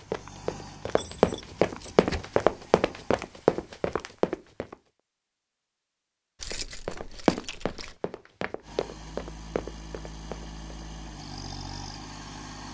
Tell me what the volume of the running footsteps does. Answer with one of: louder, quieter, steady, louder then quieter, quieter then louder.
quieter.